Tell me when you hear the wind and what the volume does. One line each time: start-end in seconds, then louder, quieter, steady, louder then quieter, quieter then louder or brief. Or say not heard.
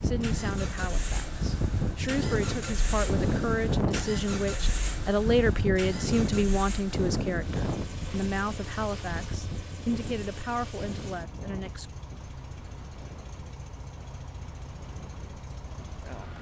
0.0-16.3 quieter.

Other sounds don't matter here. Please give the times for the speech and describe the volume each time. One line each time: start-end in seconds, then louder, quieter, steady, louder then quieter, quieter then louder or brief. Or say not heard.
0.0-11.8 louder then quieter.